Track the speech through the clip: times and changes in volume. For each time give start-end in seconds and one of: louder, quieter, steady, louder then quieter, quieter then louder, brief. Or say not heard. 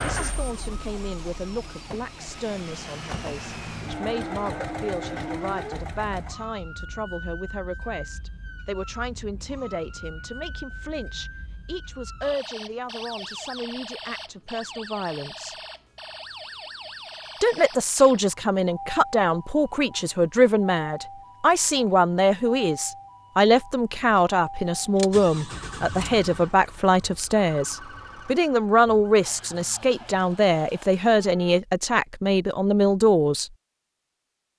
0.0-15.6 steady
17.4-33.5 steady.